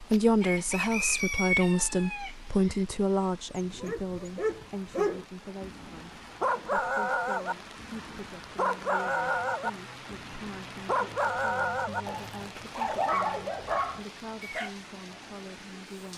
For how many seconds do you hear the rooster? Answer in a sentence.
You can hear the rooster for 3 seconds altogether.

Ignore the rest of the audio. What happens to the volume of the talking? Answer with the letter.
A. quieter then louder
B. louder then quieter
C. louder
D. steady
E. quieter
E.